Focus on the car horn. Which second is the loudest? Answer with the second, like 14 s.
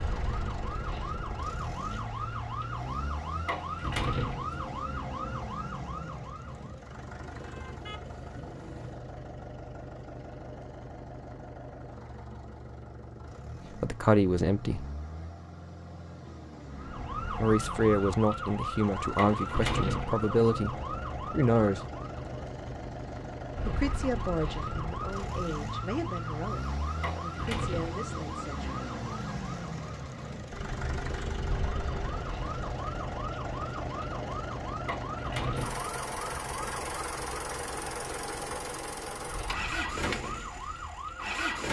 31 s.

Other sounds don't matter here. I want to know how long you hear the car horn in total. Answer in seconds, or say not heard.
3 s.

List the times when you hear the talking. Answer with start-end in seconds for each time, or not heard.
13.7-14.8, 17.3-21.9, 23.6-28.9.